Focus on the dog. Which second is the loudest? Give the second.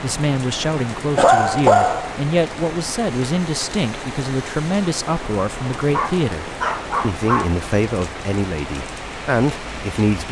2 s.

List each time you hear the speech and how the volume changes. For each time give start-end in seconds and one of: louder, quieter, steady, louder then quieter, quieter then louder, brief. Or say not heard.
0.0-10.2 steady.